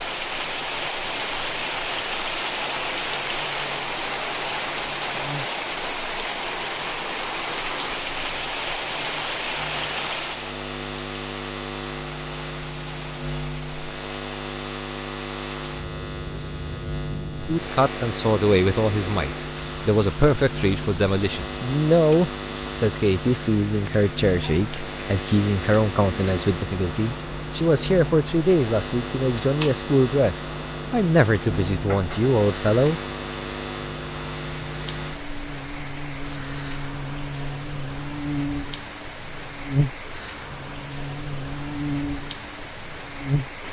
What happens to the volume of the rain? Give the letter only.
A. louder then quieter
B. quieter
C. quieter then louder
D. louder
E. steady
B.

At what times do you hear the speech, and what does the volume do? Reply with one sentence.
You can hear the speech from 17.4 to 33.0 s, at a steady volume.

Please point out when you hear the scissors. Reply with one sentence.
You can't hear the scissors here.